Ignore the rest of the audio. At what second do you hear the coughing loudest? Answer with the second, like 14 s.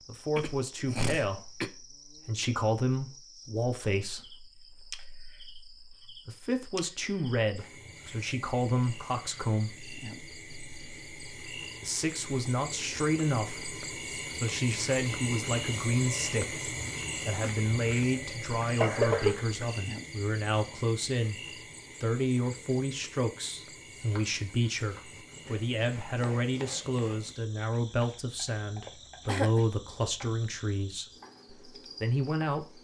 19 s.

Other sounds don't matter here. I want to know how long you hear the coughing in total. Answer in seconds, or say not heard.
3 s.